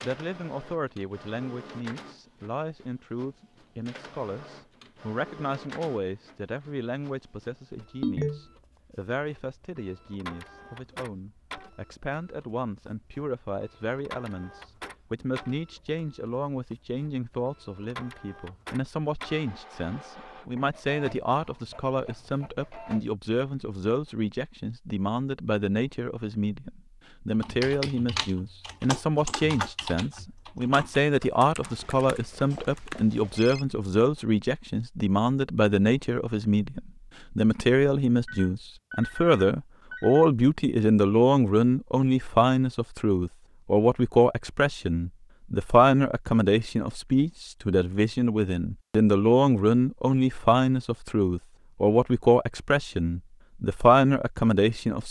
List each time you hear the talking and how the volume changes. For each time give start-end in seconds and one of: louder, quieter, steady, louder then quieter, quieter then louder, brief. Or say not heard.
0.0-55.0 louder.